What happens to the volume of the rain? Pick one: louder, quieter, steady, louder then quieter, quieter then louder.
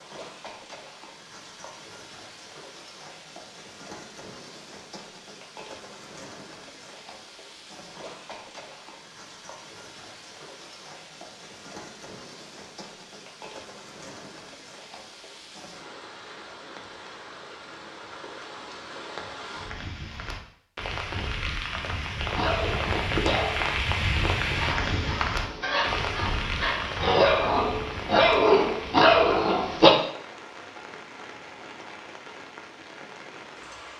louder then quieter.